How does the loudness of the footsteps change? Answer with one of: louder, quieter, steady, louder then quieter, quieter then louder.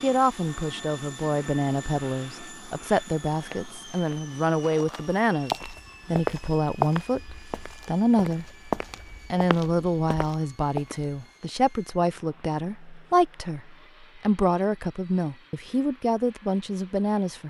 louder then quieter.